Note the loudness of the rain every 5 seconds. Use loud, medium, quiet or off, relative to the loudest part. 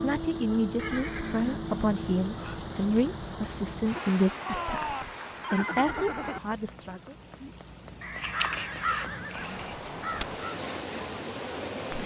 loud, medium, loud.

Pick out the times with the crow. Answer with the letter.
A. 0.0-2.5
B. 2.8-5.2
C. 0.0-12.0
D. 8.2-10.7
D.